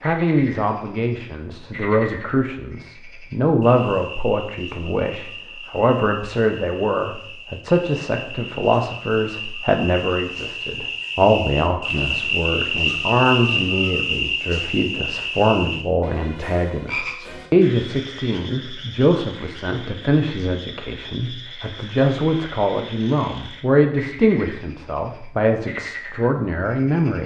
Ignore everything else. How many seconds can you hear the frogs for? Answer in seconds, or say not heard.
27 s.